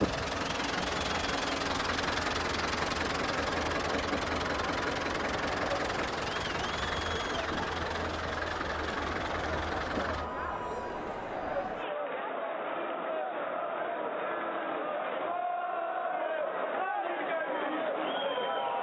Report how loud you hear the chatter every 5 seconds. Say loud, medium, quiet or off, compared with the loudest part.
medium, medium, loud, loud.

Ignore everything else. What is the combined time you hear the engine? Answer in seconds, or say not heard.
10 s.